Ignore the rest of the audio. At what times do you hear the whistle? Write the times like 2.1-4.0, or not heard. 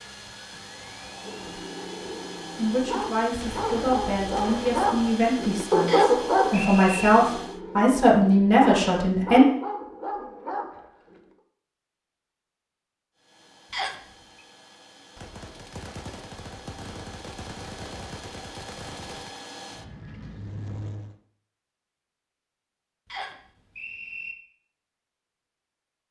5.8-7.1, 13.7-14.4, 23.1-24.4.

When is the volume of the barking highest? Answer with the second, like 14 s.
6 s.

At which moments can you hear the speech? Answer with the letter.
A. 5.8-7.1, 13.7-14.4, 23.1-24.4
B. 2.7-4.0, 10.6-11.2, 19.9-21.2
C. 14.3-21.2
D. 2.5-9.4
D.